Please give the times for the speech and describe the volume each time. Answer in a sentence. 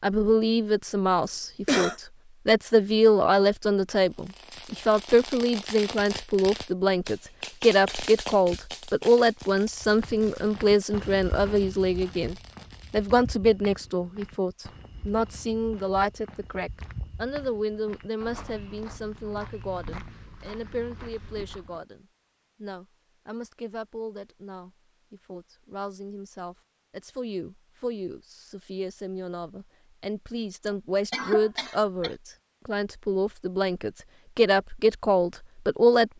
The speech can be heard from 0.0 to 36.1 s, getting quieter then louder.